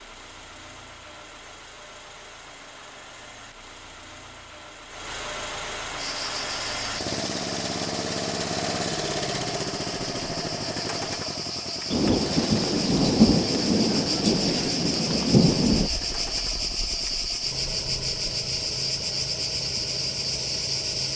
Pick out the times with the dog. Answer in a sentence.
You can't hear the dog here.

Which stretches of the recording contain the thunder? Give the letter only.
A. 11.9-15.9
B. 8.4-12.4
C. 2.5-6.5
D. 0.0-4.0
A.